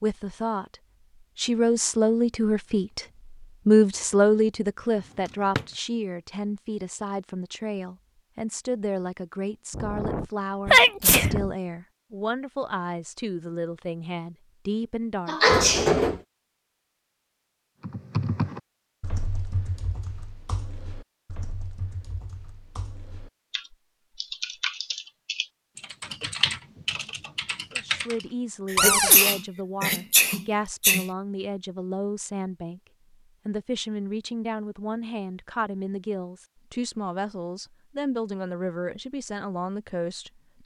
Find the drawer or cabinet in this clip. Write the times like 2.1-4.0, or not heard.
5.2-5.7, 15.4-16.2, 28.8-29.2.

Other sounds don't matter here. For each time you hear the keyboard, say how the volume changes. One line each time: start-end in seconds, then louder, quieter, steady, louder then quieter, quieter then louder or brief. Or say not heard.
17.8-28.2 quieter then louder.